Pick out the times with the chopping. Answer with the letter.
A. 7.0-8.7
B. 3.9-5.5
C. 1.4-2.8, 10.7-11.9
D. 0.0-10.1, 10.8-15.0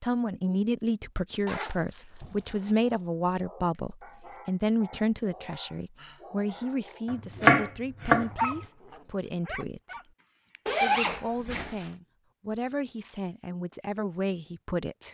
A.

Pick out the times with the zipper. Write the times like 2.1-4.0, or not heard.
1.4-2.8, 10.7-11.9.